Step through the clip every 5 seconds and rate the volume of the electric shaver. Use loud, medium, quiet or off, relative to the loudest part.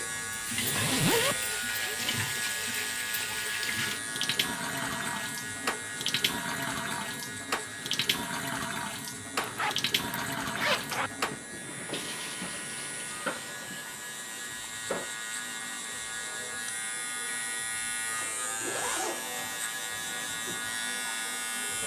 loud, medium, medium, loud, loud.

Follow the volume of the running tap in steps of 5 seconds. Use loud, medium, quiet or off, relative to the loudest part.
loud, loud, loud, quiet, quiet.